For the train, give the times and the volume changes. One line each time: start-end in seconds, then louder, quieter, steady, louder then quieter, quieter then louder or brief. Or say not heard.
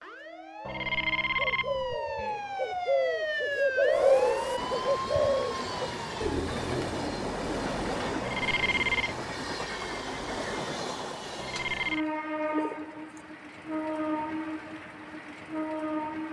0.0-16.2 louder.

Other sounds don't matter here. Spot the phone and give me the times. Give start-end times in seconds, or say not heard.
0.7-2.0, 8.2-9.2, 11.3-12.1.